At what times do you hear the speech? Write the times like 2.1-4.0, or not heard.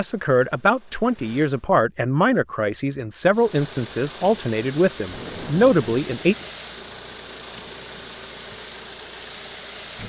0.0-6.3.